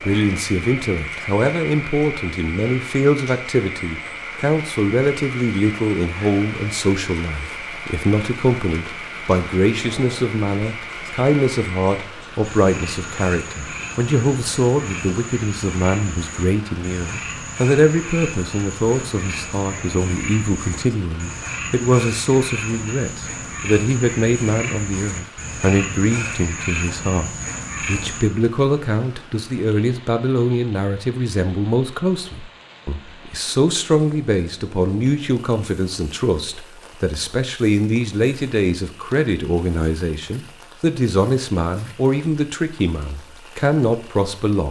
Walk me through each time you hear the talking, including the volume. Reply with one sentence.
The talking can be heard from 0.0 to 44.6 s, at a steady volume.